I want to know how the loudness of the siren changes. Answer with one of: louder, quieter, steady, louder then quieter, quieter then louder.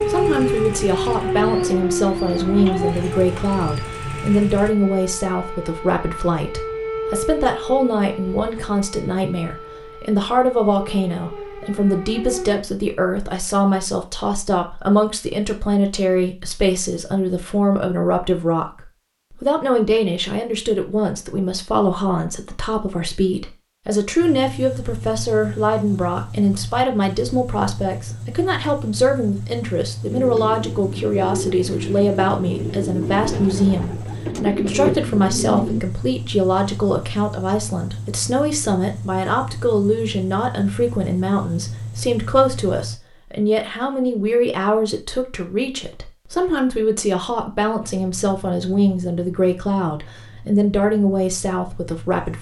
quieter.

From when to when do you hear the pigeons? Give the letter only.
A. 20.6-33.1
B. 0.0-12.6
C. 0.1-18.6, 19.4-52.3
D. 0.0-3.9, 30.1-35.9
D.